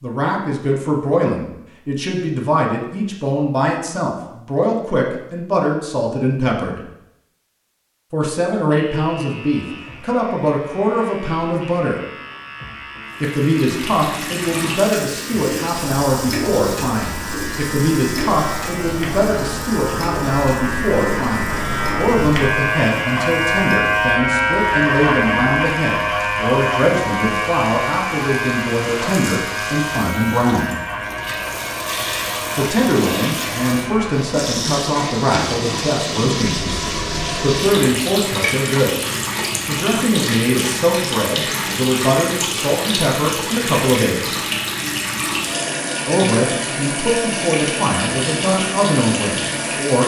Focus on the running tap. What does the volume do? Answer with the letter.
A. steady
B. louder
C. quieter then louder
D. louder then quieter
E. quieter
C.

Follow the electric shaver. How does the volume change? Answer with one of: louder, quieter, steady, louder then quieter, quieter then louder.
louder then quieter.